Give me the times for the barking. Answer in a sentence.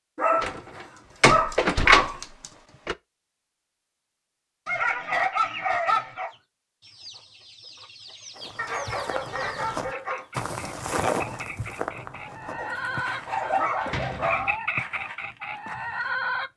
The barking can be heard from 0.1 to 2.1 s, from 4.7 to 6.3 s, from 8.6 to 10.2 s and from 12.6 to 14.6 s.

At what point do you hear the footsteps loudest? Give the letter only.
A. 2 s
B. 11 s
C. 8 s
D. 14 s
B.